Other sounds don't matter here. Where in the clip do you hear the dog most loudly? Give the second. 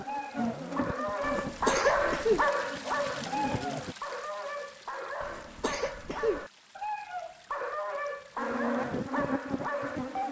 2 s.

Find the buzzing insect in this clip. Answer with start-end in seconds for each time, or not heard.
0.0-4.0, 8.3-10.2.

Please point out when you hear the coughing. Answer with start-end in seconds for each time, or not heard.
1.2-2.5, 5.2-6.5.